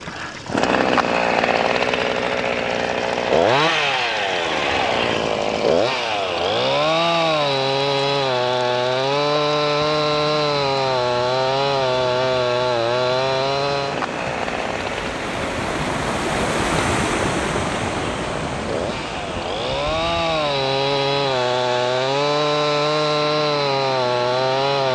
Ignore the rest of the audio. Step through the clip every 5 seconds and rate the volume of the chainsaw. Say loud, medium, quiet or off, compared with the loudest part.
loud, loud, loud, medium, loud.